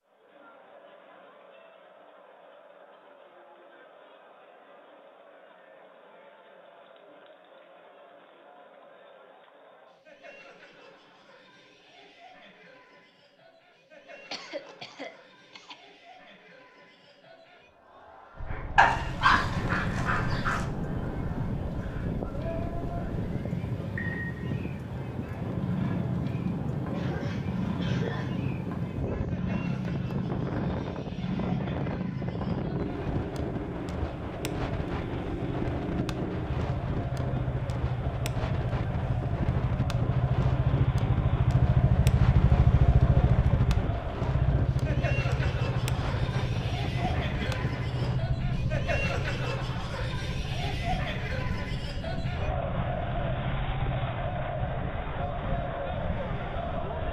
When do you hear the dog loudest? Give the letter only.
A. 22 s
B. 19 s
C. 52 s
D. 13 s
B.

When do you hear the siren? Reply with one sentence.
You can't hear the siren here.